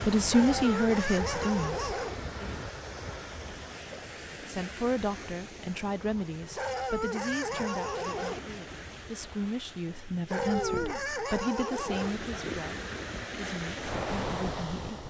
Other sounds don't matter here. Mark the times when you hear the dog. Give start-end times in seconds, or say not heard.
0.3-2.1, 6.5-8.4, 10.2-12.2.